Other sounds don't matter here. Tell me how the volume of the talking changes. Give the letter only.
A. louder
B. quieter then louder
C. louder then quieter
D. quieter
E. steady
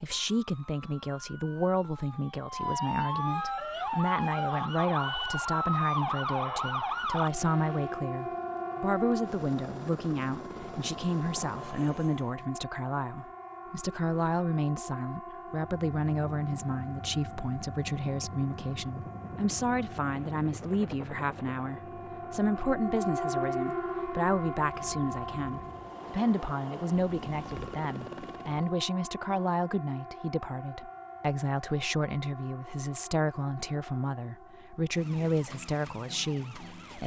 E.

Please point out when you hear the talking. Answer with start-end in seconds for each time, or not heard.
0.0-37.0.